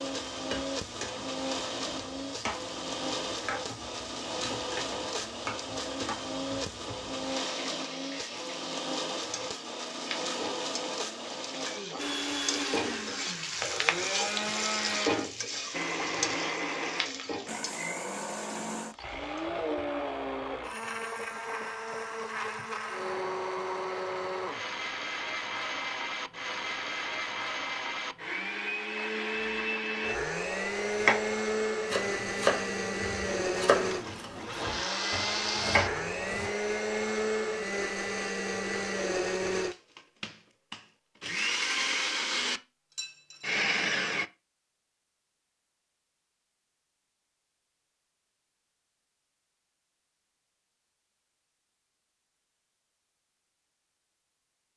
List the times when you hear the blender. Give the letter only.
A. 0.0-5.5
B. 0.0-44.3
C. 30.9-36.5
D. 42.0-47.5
B.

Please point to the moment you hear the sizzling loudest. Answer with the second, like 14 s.
15 s.